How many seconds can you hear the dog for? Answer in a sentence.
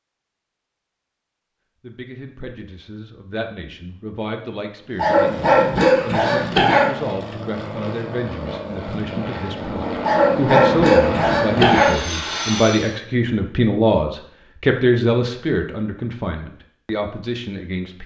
The dog can be heard for 4 seconds in total.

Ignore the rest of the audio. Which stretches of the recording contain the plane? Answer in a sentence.
The plane can be heard from 4.8 to 12.9 s.